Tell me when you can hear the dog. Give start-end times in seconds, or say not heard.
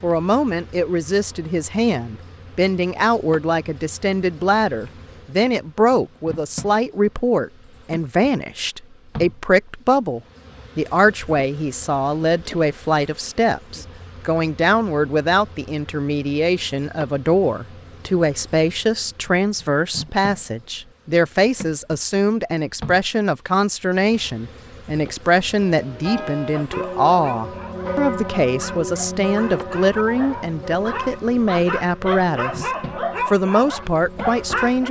26.5-34.8.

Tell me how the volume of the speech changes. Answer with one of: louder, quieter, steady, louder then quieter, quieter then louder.
steady.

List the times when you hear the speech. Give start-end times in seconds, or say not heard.
0.0-34.8.